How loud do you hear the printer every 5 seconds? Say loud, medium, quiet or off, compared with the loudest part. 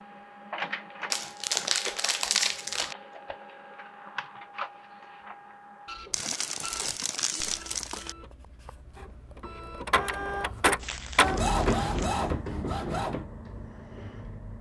medium, medium, loud.